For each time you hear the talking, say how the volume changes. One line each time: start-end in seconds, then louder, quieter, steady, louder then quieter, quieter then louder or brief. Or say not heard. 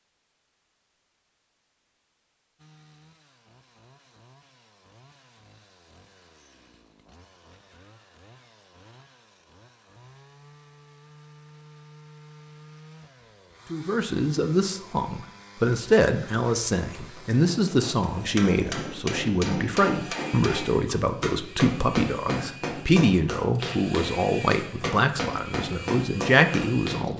13.7-27.1 steady.